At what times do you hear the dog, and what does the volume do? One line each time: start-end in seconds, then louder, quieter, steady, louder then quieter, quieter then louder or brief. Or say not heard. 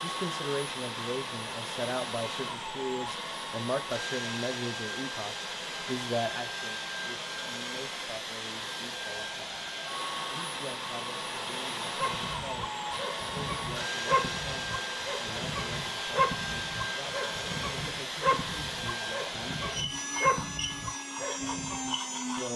11.9-21.9 quieter then louder.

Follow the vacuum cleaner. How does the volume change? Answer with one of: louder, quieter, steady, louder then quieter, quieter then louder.
steady.